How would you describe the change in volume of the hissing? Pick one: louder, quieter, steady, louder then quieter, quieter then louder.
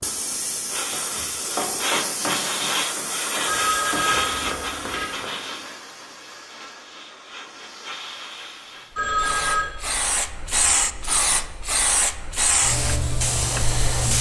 quieter then louder.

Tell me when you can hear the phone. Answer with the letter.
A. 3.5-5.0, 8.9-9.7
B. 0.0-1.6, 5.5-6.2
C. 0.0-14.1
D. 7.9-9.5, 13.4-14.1
A.